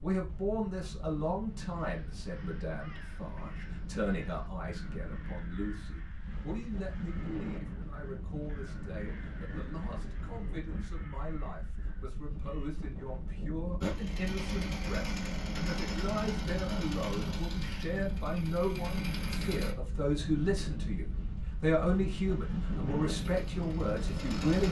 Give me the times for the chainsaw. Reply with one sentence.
You can hear the chainsaw from 13.8 to 19.8 s and from 23.1 to 24.6 s.